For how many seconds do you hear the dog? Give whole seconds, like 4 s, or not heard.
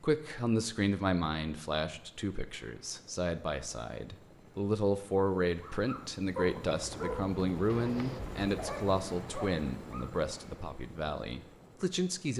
4 s.